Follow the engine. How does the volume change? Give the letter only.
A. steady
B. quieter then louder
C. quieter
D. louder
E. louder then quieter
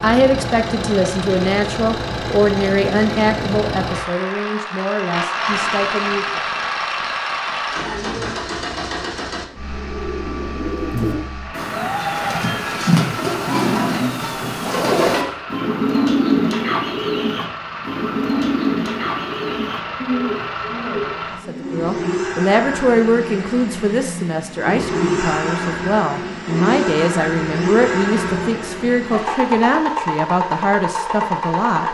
B.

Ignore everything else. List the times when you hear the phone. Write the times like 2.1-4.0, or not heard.
not heard.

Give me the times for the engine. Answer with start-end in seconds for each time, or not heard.
0.0-31.8.